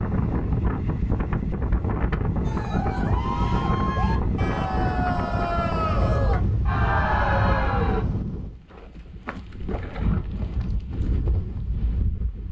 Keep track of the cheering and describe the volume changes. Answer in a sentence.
The loudness of the cheering goes up.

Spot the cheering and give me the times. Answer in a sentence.
The cheering can be heard from 2.4 to 8.1 s.